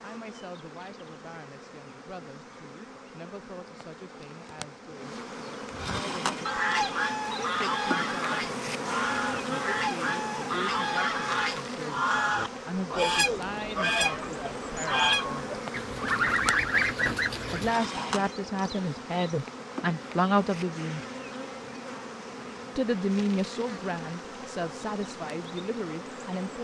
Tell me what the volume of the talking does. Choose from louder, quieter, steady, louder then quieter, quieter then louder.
louder.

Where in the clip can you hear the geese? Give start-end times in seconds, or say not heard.
5.7-18.1.